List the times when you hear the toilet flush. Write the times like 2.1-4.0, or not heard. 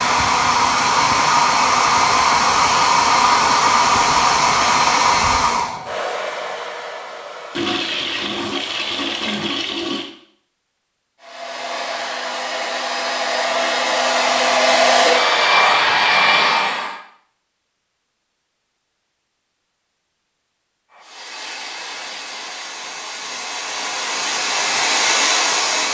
7.5-10.1.